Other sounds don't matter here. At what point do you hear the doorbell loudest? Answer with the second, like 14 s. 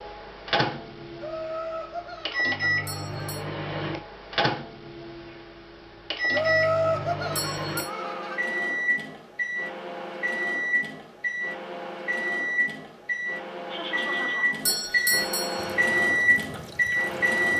15 s.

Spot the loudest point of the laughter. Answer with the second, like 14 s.
7 s.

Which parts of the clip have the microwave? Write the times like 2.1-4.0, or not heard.
0.0-17.5.